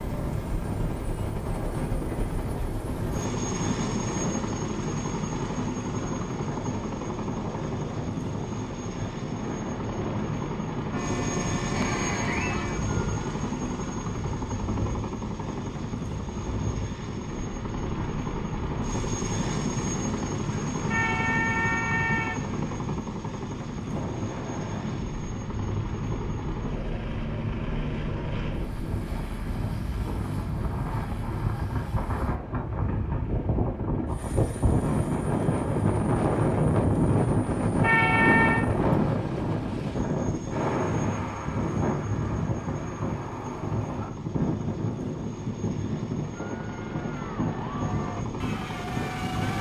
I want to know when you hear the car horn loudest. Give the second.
38 s.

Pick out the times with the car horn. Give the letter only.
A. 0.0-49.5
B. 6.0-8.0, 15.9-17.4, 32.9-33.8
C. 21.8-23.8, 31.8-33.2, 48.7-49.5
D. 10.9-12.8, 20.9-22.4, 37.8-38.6
D.